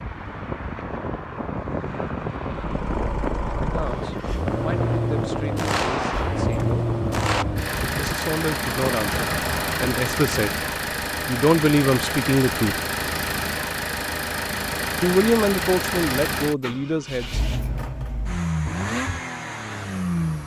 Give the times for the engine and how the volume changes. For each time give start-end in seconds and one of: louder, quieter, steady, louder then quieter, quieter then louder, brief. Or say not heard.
2.5-20.4 steady.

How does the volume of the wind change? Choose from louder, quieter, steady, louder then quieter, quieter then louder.
steady.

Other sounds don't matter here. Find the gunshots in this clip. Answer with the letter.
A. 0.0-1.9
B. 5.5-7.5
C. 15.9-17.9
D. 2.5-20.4
B.